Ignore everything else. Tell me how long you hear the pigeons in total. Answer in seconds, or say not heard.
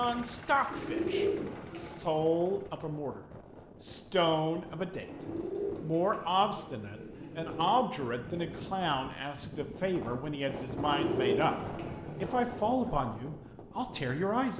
6 s.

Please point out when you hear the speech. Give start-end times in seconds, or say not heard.
0.0-3.2, 3.8-14.5.